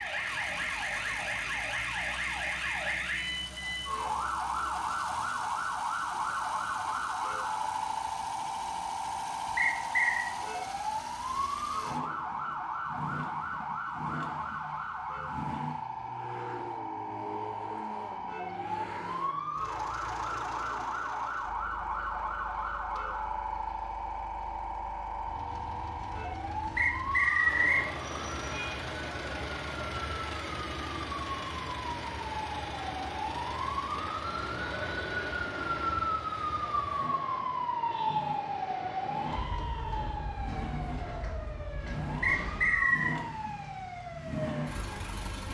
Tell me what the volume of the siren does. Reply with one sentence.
The volume of the siren stays about the same.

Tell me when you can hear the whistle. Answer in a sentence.
The whistle can be heard from 9.6 to 10.3 s, from 26.8 to 27.9 s and from 42.2 to 43.2 s.